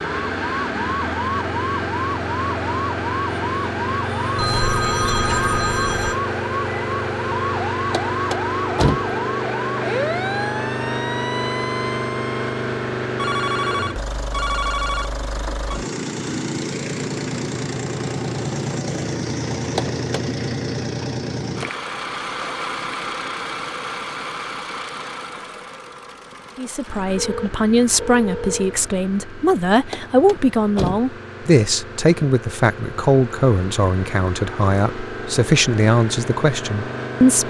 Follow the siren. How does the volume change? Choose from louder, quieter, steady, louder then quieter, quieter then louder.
steady.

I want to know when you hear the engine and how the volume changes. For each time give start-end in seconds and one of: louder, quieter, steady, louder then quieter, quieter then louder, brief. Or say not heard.
0.0-37.4 quieter.